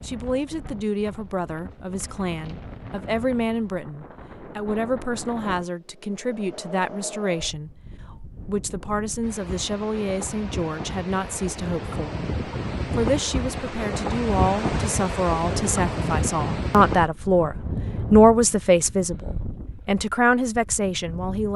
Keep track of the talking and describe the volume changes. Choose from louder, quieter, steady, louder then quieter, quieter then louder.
louder.